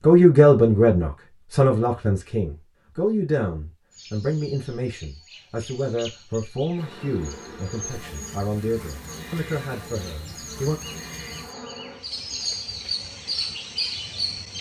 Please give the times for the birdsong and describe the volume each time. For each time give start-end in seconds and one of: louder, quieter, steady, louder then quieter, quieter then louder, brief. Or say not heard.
3.9-14.5 louder.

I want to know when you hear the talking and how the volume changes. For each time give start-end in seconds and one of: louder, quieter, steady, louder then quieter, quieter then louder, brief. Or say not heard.
0.0-10.8 quieter.